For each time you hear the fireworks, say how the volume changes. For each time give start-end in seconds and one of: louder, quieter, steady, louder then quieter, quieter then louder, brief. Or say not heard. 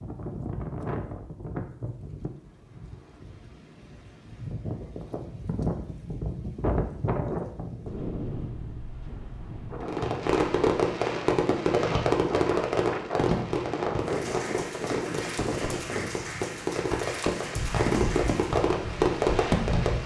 9.8-20.0 quieter then louder.